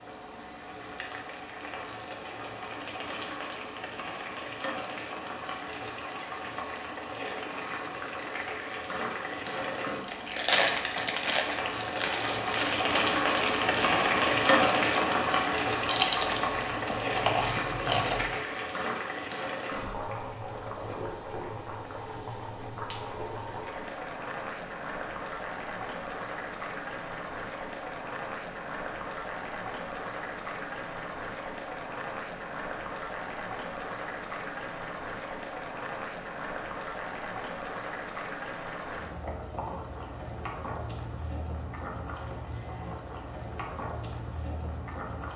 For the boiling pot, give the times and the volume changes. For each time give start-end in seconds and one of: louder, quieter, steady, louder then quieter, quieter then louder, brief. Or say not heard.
0.0-45.3 louder then quieter.